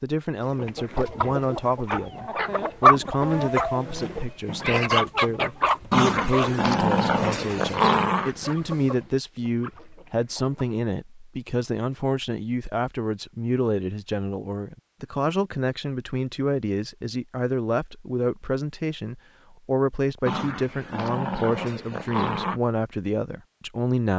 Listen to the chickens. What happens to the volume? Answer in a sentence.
The loudness of the chickens goes up, then down.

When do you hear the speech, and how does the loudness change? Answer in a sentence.
The speech can be heard from 0.0 to 24.1 s, at a steady volume.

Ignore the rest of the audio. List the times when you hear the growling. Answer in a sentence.
The growling can be heard from 5.9 to 8.3 s and from 20.2 to 22.6 s.